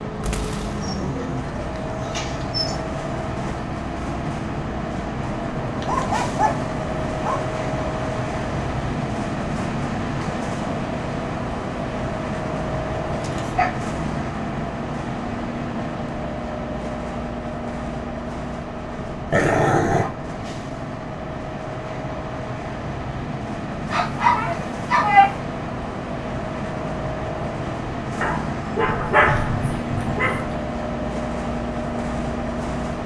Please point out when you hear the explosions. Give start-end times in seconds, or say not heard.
0.2-0.9.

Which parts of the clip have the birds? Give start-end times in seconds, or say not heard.
not heard.